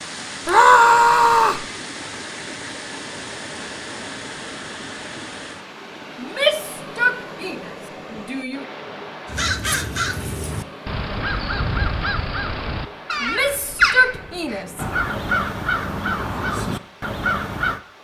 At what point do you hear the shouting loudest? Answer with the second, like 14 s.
1 s.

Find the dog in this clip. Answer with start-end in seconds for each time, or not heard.
not heard.